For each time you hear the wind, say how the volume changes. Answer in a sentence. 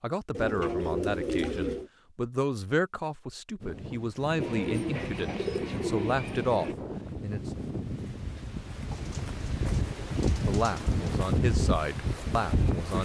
The wind can be heard from 3.6 to 13.0 s, getting louder.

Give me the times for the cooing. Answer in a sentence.
The cooing can be heard from 0.3 to 1.9 s, from 4.3 to 6.8 s and from 8.8 to 11.0 s.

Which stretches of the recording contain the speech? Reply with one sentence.
The speech can be heard from 0.0 to 7.5 s and from 10.4 to 13.0 s.